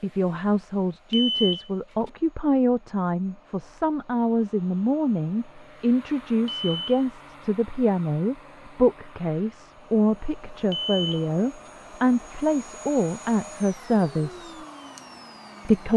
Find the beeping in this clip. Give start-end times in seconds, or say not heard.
1.1-2.1, 6.5-7.5, 10.7-11.7.